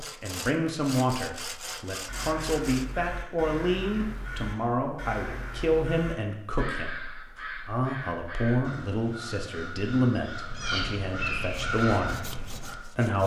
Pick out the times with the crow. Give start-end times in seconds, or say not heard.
1.6-12.8.